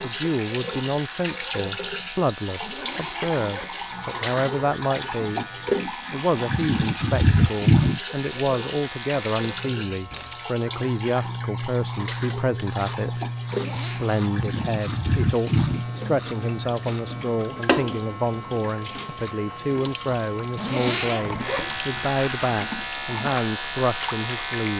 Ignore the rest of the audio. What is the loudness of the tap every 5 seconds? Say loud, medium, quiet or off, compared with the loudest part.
medium, loud, medium, medium, medium.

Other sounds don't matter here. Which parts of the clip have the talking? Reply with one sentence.
You can hear the talking from 0.0 to 5.5 s and from 6.1 to 24.7 s.